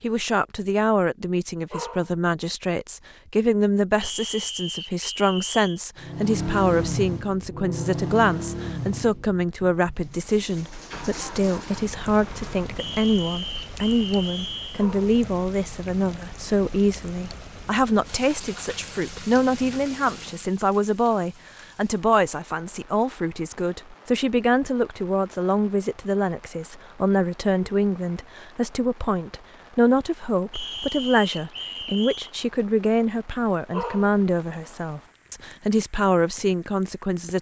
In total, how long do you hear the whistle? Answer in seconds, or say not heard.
6 s.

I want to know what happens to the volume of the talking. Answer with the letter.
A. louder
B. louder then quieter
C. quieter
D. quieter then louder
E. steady
E.